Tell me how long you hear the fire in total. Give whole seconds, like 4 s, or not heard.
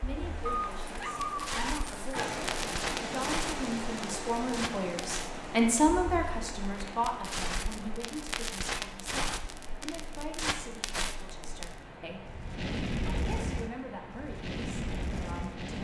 16 s.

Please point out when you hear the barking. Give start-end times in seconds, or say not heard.
0.5-2.2.